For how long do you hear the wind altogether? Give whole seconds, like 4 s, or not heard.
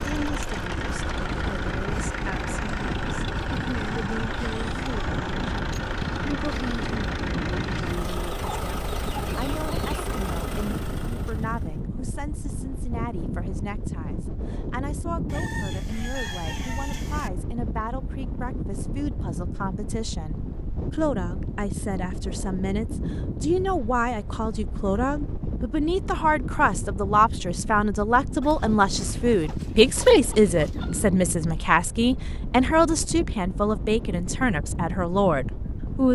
36 s.